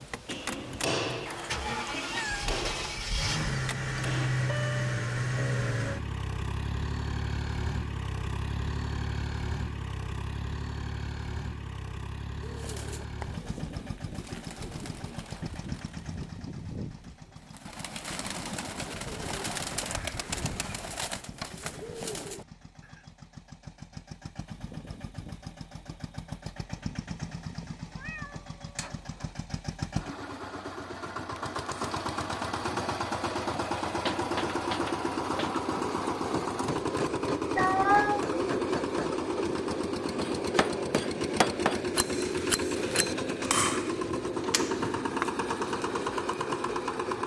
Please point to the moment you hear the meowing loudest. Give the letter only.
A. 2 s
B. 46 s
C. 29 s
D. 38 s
D.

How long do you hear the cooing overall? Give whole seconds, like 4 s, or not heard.
11 s.